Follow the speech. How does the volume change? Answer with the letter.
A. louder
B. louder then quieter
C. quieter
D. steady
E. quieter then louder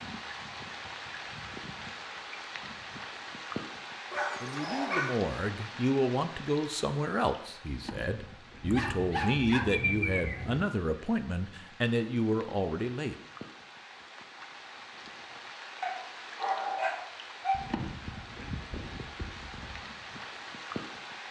D.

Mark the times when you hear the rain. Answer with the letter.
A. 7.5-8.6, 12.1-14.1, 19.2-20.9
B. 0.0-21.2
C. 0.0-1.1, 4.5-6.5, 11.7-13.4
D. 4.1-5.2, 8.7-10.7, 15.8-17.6
B.